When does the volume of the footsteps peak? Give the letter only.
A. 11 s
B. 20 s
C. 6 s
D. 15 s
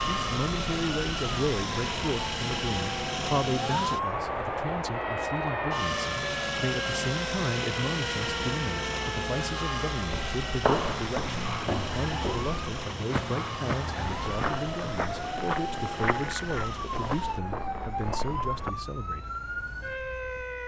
A.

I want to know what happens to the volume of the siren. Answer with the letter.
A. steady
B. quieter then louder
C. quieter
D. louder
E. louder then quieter
A.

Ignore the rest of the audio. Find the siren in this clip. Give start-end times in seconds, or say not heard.
0.0-20.6.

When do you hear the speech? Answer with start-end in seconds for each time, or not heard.
0.0-19.3.